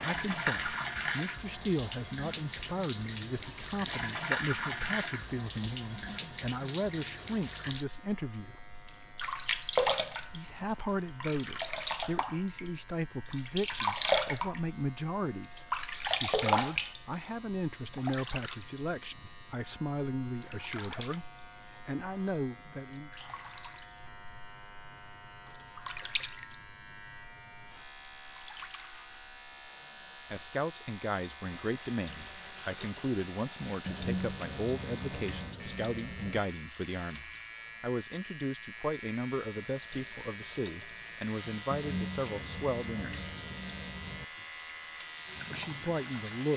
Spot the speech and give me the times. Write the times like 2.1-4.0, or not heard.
0.0-8.7, 10.3-23.1, 30.3-43.2, 45.5-46.5.